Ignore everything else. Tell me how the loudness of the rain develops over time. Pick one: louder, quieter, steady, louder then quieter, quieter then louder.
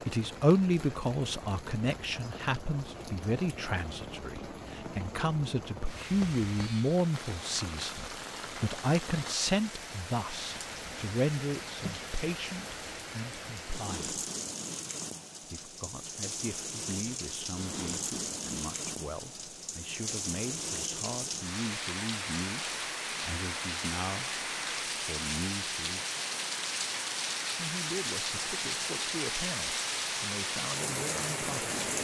louder.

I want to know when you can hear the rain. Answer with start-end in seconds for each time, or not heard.
0.0-31.9.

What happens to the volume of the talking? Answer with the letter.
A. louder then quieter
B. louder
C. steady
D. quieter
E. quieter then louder
D.